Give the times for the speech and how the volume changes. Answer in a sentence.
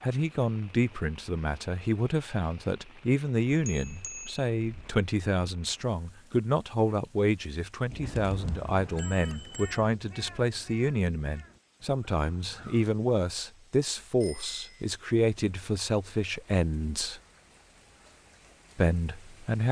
The speech can be heard from 0.0 to 17.2 s, at a steady volume; and briefly from 18.8 to 19.6 s.